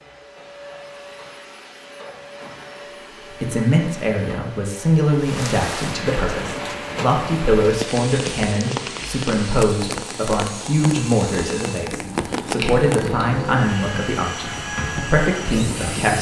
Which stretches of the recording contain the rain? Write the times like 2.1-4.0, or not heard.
5.2-16.1.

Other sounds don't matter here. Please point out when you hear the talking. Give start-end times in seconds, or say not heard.
3.3-16.1.